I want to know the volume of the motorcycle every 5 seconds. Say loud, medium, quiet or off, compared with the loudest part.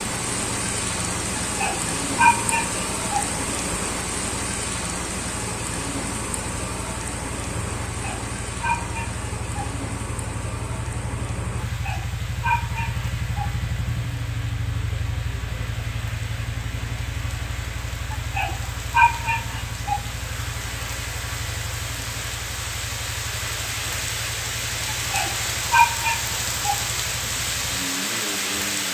medium, medium, loud, loud, medium, medium.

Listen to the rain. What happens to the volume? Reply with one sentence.
The loudness of the rain goes down, then up.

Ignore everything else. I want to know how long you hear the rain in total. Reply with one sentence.
You can hear the rain for 29 seconds altogether.